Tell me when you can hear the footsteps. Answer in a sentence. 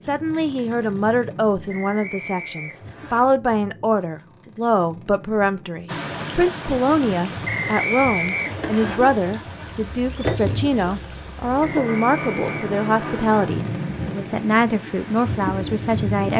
The footsteps can't be heard in this clip.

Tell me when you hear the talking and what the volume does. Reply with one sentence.
The talking can be heard from 0.0 to 16.3 s, at a steady volume.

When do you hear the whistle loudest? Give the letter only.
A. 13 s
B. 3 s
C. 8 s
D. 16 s
C.